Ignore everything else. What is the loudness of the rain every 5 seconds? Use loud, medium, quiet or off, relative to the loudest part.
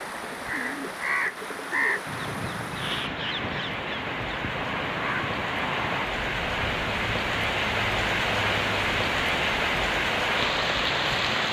medium, loud, loud.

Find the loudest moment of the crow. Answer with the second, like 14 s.
2 s.